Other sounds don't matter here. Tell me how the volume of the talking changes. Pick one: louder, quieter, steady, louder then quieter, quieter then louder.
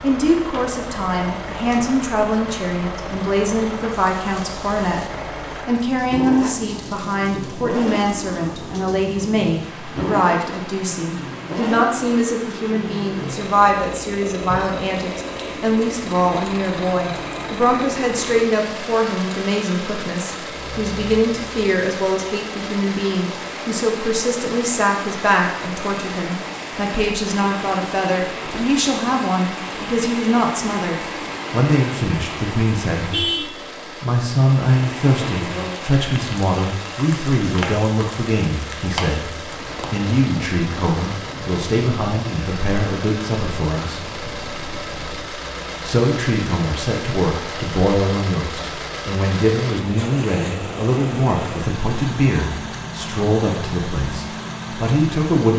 steady.